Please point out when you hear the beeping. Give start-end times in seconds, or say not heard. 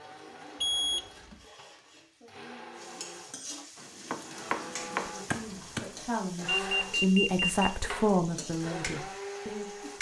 0.6-1.4, 6.5-7.7.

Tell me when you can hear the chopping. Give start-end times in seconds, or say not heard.
3.8-6.0.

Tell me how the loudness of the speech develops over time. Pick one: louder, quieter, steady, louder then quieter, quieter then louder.
louder then quieter.